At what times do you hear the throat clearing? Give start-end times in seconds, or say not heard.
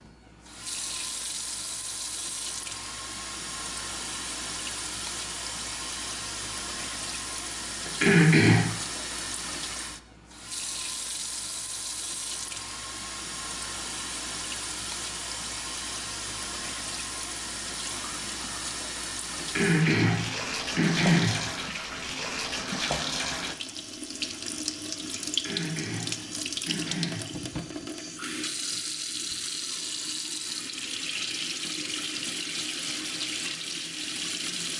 7.8-8.7, 19.4-21.4, 25.3-27.4.